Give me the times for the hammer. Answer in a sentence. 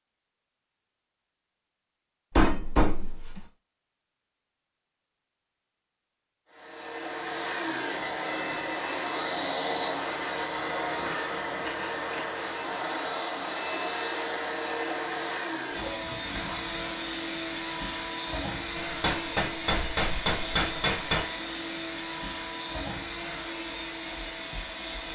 You can hear the hammer from 2.4 to 3.4 s and from 18.8 to 21.2 s.